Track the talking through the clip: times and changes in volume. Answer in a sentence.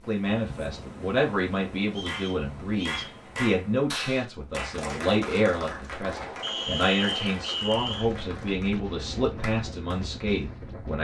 You can hear the talking from 0.1 to 10.9 s, at a steady volume.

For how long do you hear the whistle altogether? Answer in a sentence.
The whistle can be heard for 3 seconds in total.